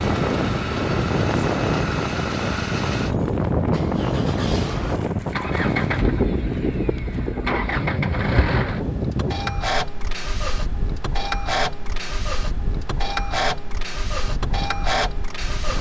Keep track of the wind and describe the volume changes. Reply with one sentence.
The volume of the wind goes down.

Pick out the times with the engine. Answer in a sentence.
The engine can be heard from 0.0 to 15.7 s.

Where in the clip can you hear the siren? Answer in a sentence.
The siren can't be heard in this clip.